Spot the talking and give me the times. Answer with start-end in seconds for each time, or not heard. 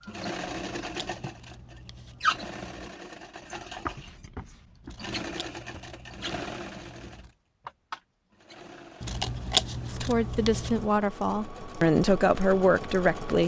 9.8-13.4.